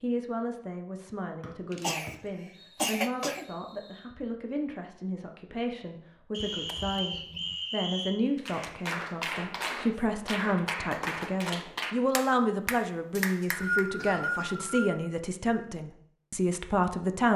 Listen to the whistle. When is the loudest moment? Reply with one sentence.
The loudest moment of the whistle is at 14 seconds.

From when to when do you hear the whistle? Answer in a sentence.
The whistle can be heard from 1.4 to 4.0 s, from 6.3 to 8.2 s and from 13.1 to 14.9 s.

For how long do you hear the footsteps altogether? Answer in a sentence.
The footsteps can't be heard in this clip.